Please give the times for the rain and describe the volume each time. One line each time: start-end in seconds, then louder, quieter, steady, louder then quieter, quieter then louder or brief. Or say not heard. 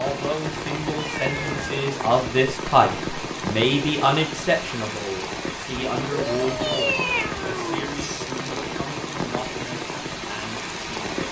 0.0-11.2 steady.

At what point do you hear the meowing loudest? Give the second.
7 s.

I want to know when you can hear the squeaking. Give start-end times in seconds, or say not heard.
7.9-8.7.